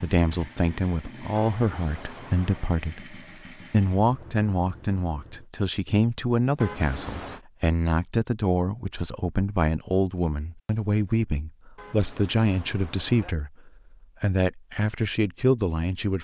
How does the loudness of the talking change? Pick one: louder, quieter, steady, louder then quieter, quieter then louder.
steady.